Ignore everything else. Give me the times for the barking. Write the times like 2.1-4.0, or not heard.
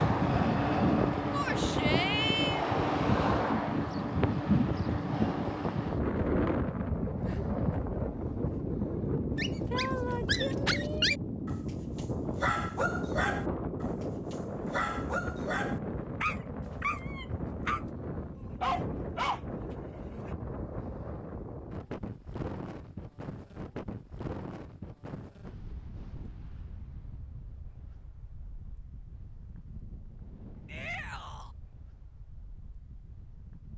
9.3-20.4.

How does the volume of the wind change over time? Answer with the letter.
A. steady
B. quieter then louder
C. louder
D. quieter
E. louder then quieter
D.